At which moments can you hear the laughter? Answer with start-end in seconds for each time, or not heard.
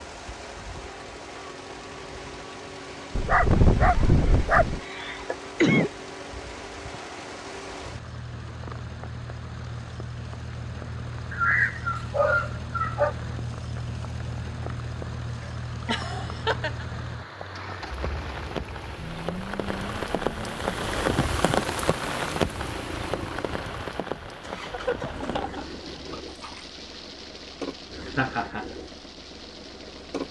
3.8-5.9, 15.4-16.9, 28.1-28.6.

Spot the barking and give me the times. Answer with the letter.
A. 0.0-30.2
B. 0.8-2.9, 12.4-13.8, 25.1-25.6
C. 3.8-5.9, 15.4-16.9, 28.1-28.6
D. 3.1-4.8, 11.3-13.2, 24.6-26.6
D.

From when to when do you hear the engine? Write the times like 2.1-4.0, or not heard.
0.0-30.2.